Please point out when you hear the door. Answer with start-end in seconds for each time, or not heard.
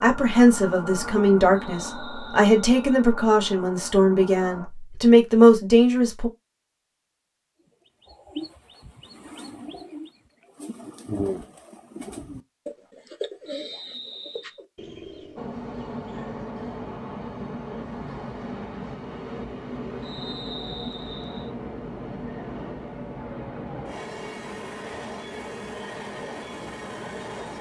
not heard.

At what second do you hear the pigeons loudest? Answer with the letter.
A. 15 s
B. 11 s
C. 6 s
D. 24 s
B.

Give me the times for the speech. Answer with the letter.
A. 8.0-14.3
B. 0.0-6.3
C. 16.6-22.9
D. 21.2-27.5
B.